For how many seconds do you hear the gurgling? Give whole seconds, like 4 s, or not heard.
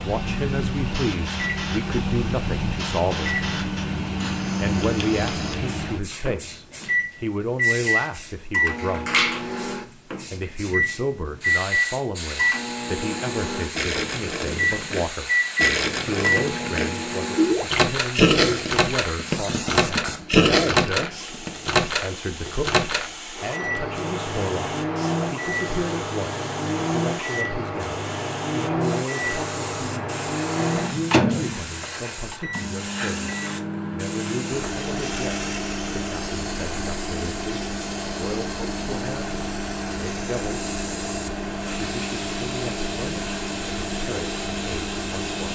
8 s.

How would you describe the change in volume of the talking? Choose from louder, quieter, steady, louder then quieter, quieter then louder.
quieter.